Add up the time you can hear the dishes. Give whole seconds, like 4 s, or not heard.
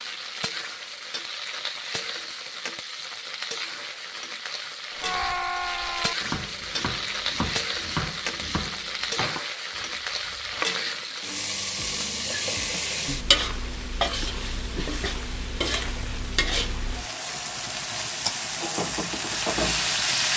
not heard.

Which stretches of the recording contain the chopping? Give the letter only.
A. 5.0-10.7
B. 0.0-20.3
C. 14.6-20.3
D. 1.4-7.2
A.